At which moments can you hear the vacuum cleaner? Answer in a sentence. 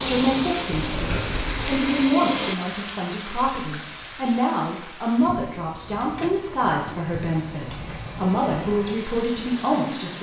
You can hear the vacuum cleaner from 0.0 to 2.5 s.